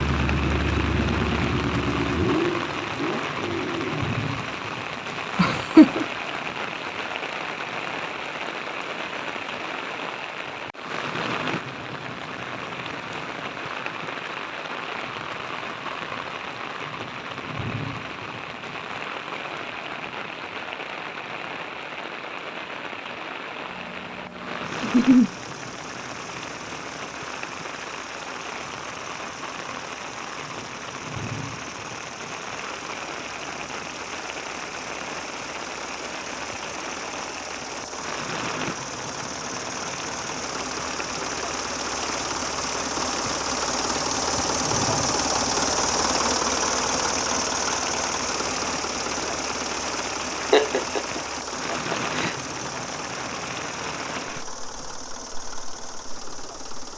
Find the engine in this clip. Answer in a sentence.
The engine can be heard from 0.0 to 4.2 s and from 23.6 to 56.9 s.